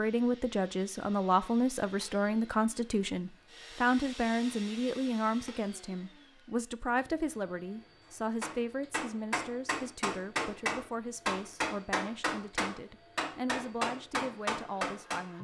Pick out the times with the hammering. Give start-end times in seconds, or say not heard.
8.4-15.2.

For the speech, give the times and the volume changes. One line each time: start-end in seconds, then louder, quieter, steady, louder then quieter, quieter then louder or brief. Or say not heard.
0.0-15.4 quieter.